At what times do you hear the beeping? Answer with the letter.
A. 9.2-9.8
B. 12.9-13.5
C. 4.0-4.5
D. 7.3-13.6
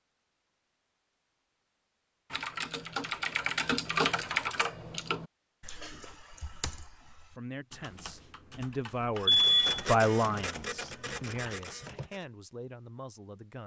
A.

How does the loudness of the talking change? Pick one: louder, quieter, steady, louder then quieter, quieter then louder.
louder then quieter.